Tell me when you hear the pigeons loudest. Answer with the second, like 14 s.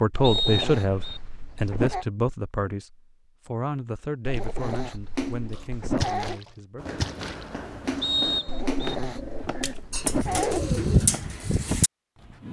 11 s.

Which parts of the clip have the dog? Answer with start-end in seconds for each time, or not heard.
0.1-2.0, 4.2-6.4, 8.4-10.7.